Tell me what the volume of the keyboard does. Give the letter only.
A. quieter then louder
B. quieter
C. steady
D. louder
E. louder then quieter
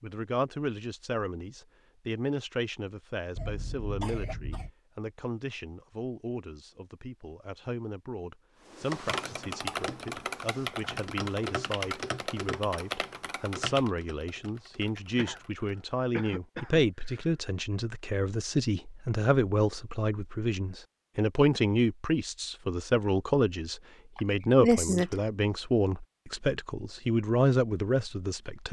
B.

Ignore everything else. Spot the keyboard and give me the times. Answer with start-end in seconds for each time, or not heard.
8.7-15.8.